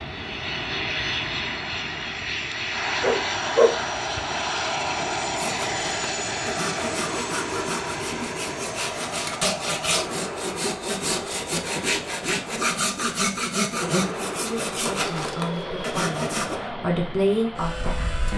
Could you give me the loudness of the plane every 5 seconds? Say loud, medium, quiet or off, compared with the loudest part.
loud, loud, medium, medium.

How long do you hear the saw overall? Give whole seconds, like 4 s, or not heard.
11 s.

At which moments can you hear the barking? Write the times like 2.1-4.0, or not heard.
3.0-4.2.